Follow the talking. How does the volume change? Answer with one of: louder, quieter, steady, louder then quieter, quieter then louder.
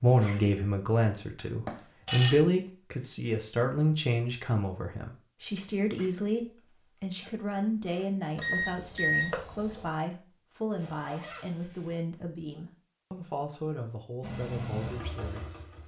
quieter.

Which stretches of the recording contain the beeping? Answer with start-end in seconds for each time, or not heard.
1.6-2.4, 8.3-9.9.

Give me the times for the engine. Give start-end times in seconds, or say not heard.
14.2-15.8.